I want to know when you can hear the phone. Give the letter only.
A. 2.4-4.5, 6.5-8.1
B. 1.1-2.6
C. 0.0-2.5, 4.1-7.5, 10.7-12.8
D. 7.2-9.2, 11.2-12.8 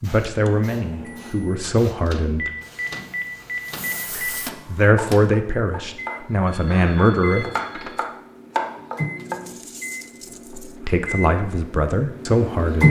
A.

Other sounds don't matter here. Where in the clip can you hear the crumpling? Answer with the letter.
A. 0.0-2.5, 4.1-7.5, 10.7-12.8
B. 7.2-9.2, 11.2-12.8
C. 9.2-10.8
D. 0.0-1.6
C.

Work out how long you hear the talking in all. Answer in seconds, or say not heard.
8 s.